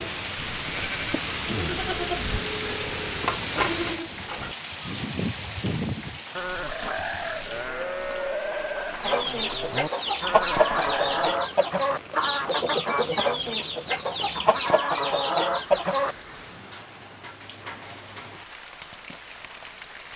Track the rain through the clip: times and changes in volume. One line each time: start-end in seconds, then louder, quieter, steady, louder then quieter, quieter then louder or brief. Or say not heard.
0.0-20.1 quieter.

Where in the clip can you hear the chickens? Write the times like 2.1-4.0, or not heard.
9.0-16.1.